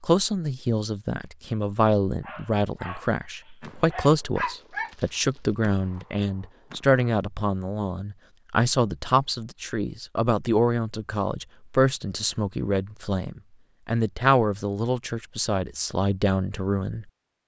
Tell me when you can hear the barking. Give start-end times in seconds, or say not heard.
2.2-5.4.